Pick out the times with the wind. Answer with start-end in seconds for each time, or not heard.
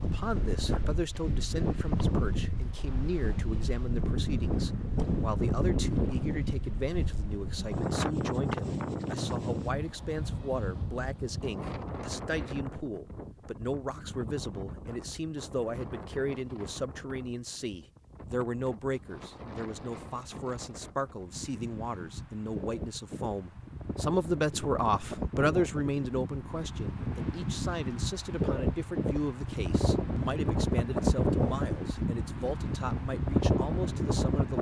0.0-34.5.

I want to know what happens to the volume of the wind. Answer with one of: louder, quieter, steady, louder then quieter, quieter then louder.
quieter then louder.